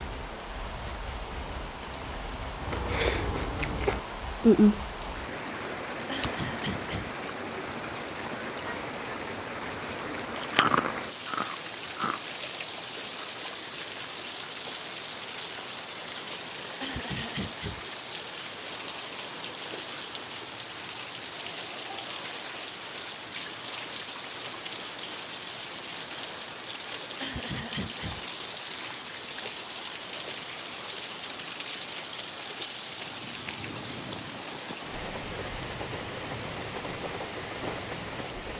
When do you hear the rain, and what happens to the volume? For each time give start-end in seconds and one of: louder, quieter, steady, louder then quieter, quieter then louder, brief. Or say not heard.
0.0-38.5 steady.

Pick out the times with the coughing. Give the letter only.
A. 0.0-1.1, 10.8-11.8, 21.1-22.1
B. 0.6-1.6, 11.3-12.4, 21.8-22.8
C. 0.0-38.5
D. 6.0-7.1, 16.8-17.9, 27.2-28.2
D.